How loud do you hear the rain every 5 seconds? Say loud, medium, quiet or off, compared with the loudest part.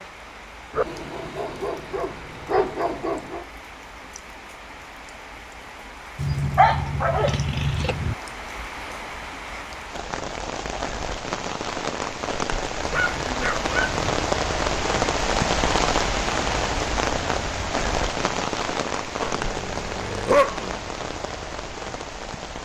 quiet, quiet, loud, loud, medium.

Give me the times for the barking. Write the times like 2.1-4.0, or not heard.
0.7-3.5, 6.2-8.2, 12.9-14.1, 19.2-20.8.